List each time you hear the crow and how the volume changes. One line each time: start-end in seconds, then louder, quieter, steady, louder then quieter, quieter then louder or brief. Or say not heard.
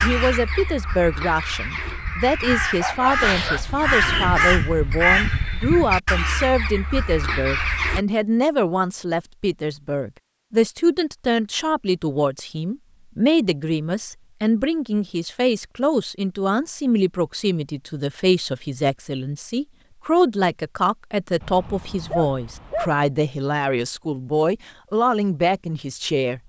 0.0-8.0 louder then quieter.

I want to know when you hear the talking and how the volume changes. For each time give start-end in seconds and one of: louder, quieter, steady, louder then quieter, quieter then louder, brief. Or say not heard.
0.0-26.4 steady.